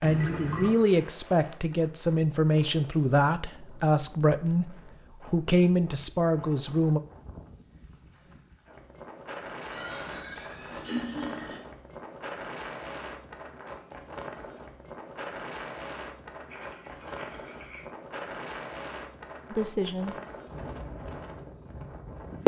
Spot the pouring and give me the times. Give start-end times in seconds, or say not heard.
0.0-0.8, 9.7-11.6, 16.4-17.9.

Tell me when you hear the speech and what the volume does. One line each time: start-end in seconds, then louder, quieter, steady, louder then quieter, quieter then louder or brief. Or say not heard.
0.0-7.0 steady
19.5-20.1 brief.